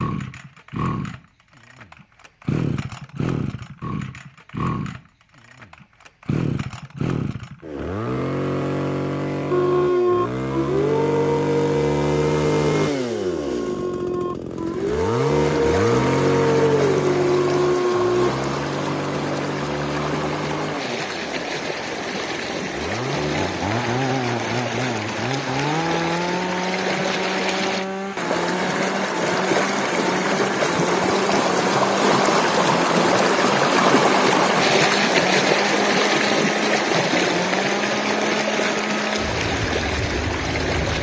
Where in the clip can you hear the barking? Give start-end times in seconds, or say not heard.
9.5-18.3.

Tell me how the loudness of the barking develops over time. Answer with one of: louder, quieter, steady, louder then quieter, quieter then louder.
quieter then louder.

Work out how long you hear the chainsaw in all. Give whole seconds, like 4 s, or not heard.
41 s.